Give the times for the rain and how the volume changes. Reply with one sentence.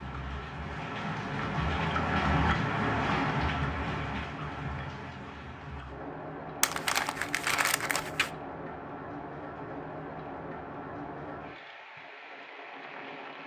The rain can be heard from 0.0 to 13.4 s, getting quieter.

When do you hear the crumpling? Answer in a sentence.
The crumpling can be heard from 6.6 to 8.3 s.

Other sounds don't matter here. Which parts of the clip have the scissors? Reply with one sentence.
The scissors can't be heard in this clip.